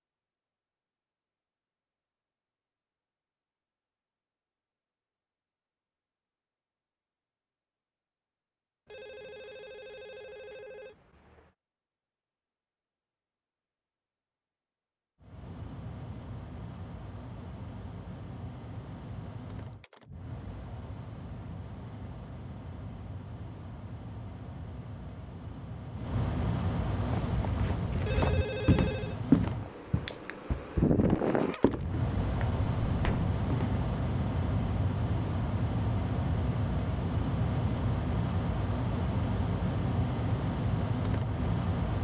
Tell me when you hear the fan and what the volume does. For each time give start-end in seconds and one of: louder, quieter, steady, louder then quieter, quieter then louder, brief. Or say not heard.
15.2-41.9 louder.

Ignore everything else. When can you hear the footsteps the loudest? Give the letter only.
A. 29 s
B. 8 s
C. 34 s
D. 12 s
A.